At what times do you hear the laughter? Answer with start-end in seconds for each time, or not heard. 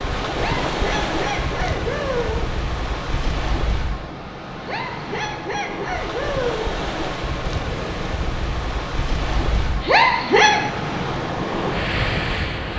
0.3-2.5, 4.6-6.7, 9.8-10.7.